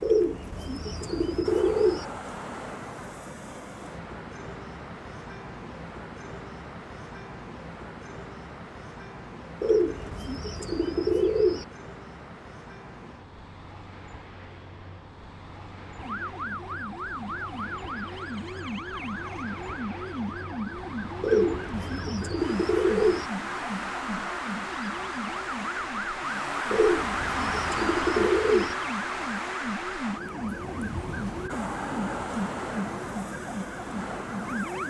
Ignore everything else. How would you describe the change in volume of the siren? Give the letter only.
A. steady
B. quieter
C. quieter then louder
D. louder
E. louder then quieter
A.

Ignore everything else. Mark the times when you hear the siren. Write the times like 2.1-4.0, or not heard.
15.9-34.8.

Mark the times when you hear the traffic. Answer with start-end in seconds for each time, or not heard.
0.0-34.8.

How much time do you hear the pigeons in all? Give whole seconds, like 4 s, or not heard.
8 s.